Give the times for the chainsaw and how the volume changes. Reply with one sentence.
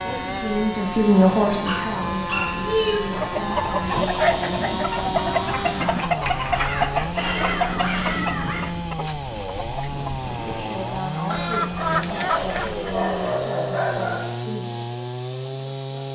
You can hear the chainsaw from 0.0 to 16.1 s, at a steady volume.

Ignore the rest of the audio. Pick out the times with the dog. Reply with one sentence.
The dog can be heard from 1.6 to 3.1 s, from 6.5 to 8.7 s and from 12.3 to 14.3 s.